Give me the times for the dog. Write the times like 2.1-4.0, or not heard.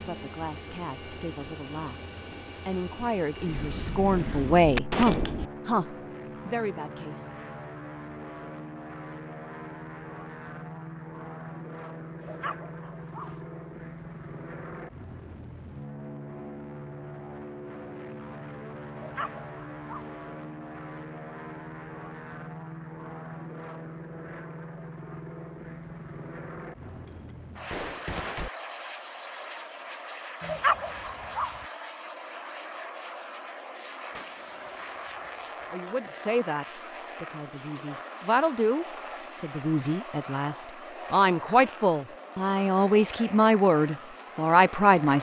12.2-13.4, 18.9-20.2, 30.4-31.6.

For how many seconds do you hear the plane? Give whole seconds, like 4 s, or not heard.
45 s.